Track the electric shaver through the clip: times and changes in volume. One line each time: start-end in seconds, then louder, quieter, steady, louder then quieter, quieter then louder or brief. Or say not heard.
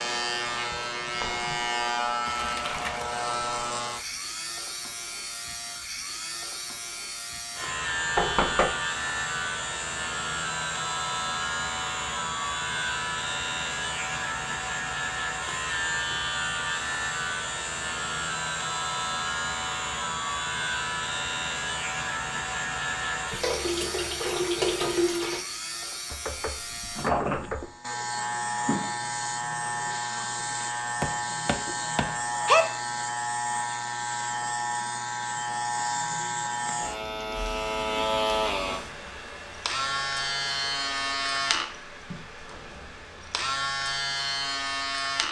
0.0-45.2 steady.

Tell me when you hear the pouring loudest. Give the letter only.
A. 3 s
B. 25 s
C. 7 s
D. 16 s
B.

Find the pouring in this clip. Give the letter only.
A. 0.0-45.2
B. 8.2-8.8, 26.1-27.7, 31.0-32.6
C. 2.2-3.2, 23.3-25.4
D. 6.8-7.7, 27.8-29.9
C.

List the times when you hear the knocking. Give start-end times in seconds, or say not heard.
8.2-8.8, 26.1-27.7, 31.0-32.6.